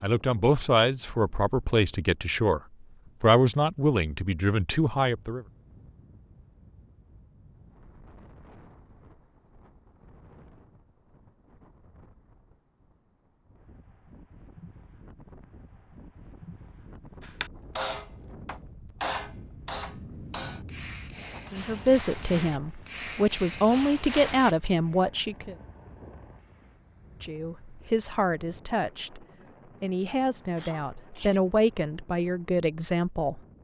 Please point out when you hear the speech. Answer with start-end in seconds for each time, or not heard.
0.0-2.6, 3.2-5.5, 21.5-25.6, 27.2-33.4.